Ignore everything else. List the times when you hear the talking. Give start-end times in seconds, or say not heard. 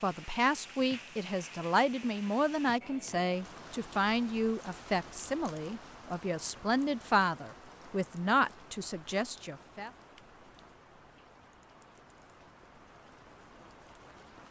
0.0-9.9.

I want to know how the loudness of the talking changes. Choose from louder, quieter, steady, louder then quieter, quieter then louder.
steady.